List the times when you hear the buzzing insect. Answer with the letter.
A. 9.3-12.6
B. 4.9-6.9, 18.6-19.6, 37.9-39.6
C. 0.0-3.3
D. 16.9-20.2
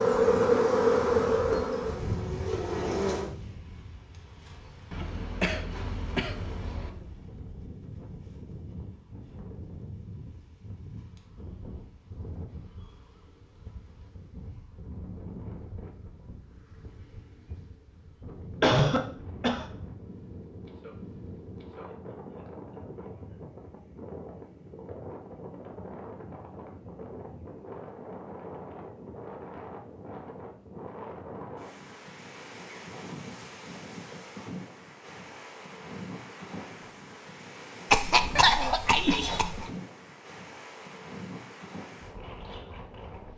C.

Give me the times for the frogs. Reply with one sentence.
The frogs can't be heard in this clip.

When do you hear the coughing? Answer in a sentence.
The coughing can be heard from 4.9 to 6.9 s, from 18.6 to 19.6 s and from 37.9 to 39.6 s.